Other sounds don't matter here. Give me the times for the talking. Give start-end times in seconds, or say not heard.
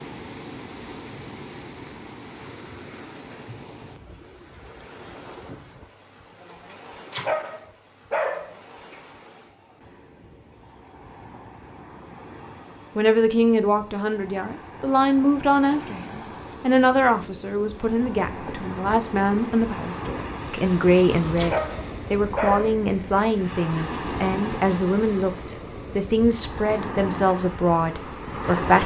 12.9-28.8.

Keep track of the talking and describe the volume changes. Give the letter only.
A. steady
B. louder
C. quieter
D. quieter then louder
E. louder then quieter
A.